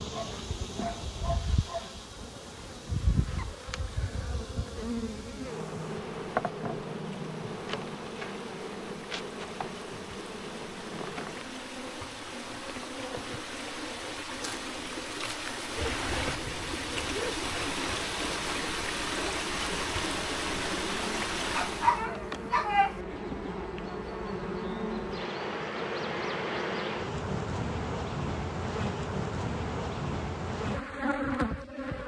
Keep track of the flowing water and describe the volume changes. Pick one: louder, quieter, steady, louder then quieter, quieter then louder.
louder.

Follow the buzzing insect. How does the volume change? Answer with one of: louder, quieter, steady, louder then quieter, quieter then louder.
quieter then louder.